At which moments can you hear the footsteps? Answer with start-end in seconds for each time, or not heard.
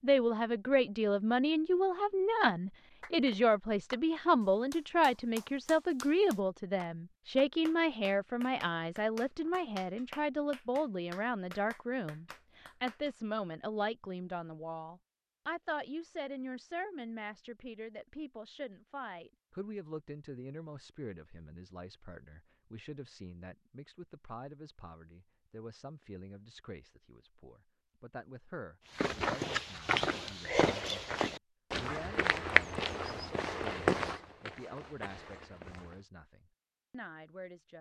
28.9-36.0.